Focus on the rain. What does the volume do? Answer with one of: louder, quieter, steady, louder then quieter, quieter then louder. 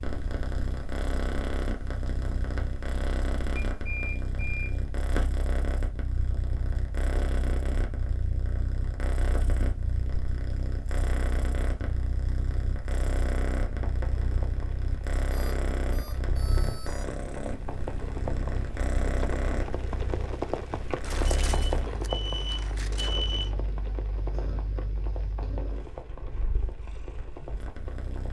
louder then quieter.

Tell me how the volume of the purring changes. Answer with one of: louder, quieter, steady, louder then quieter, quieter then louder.
quieter.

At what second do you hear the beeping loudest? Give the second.
23 s.